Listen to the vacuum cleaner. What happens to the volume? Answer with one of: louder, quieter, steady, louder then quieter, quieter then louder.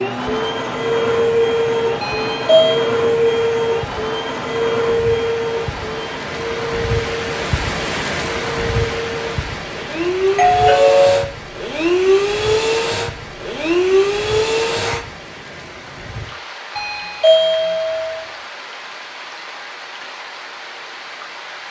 quieter then louder.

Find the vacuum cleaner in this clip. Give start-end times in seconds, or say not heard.
0.0-15.1.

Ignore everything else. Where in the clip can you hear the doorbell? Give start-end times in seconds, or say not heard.
2.0-2.8, 10.3-11.2, 16.8-18.2.